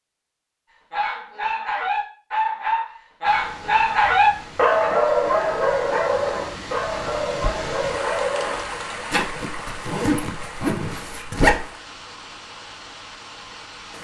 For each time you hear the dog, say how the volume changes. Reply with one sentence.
You can hear the dog from 0.9 to 8.7 s, getting louder then quieter.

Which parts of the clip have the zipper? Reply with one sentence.
The zipper can be heard from 9.1 to 11.7 s.